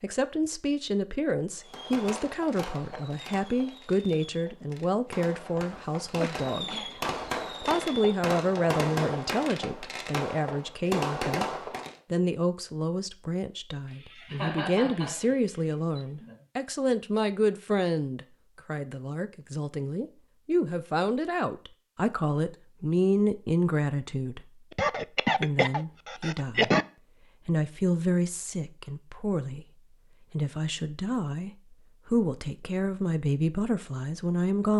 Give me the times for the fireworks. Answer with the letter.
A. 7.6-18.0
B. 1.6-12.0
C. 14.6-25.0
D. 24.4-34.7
B.